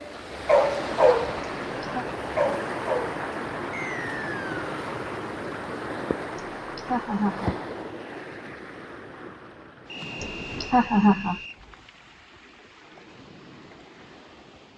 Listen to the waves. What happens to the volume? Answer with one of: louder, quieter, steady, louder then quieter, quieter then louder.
quieter.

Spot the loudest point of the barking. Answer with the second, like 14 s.
1 s.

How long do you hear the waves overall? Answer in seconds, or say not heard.
15 s.